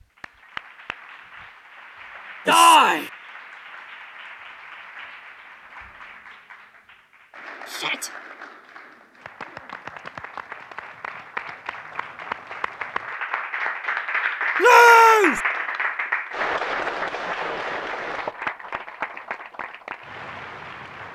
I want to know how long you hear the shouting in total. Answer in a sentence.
The shouting can be heard for 2 seconds in total.